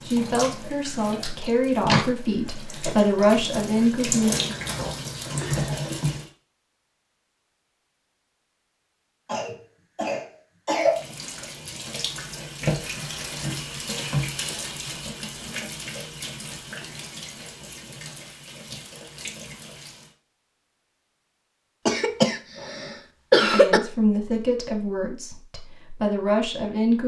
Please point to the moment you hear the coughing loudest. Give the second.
23 s.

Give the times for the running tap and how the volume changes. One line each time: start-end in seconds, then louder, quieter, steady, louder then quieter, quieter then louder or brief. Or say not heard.
0.0-6.3 quieter then louder
10.8-20.1 quieter.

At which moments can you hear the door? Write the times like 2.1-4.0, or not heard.
1.4-2.1.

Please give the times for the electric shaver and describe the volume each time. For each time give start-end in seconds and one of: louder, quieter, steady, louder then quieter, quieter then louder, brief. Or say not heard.
not heard.